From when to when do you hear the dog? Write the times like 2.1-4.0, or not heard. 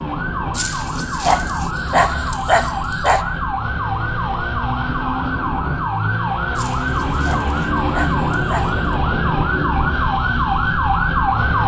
0.6-3.2, 6.5-8.9.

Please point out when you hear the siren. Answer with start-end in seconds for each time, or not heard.
0.0-11.6.